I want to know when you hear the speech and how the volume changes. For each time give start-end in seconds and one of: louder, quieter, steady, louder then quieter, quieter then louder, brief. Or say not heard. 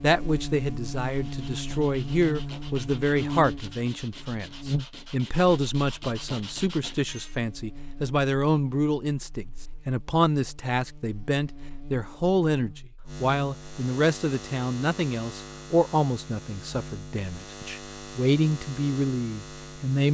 0.0-20.0 steady.